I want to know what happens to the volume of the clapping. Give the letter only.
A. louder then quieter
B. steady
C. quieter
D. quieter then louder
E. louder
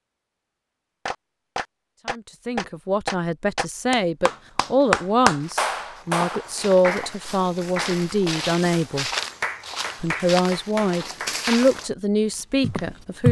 A.